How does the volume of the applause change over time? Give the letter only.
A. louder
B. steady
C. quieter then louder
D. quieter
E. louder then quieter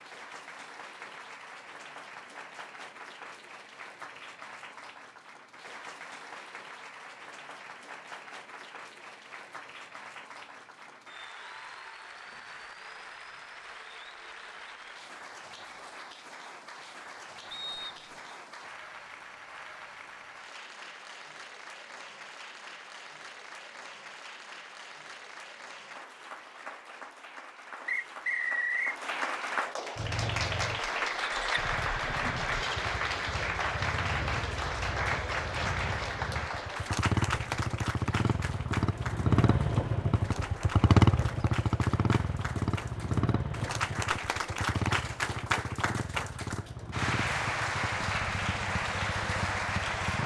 A.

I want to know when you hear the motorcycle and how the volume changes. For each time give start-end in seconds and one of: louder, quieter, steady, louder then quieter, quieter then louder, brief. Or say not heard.
29.9-50.2 louder then quieter.